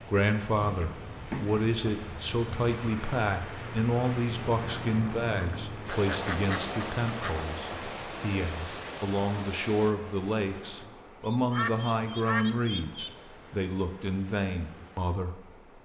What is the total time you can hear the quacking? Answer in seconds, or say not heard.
5 s.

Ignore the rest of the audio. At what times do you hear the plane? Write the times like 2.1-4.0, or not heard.
0.0-9.9.